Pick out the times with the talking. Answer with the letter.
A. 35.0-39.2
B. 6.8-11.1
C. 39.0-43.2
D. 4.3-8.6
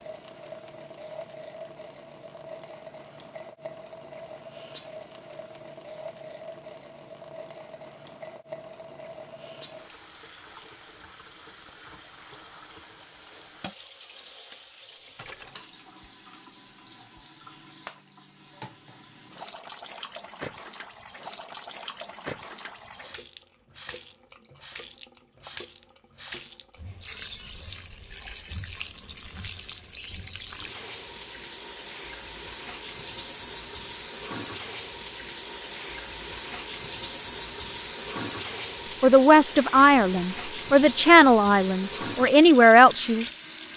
C.